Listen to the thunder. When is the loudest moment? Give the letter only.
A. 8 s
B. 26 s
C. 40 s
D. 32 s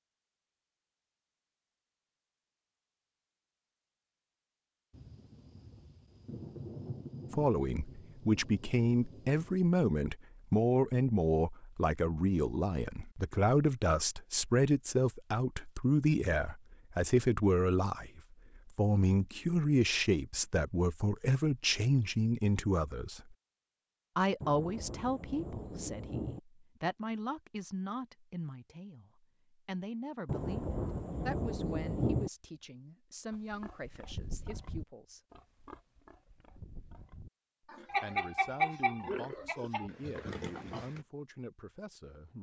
D.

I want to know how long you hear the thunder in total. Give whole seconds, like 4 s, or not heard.
9 s.